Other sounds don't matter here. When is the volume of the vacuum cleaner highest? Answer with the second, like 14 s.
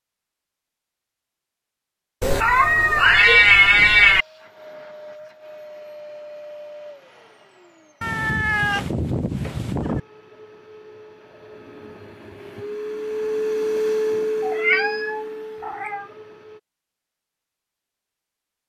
14 s.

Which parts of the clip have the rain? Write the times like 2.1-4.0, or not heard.
not heard.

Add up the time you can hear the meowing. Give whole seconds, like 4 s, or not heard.
6 s.